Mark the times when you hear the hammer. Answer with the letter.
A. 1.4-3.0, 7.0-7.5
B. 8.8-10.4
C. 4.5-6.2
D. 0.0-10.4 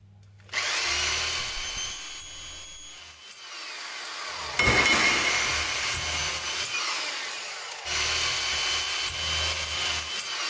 C.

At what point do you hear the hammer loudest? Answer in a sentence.
The loudest moment of the hammer is at 5 seconds.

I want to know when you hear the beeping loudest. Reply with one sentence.
The loudest moment of the beeping is at 2 seconds.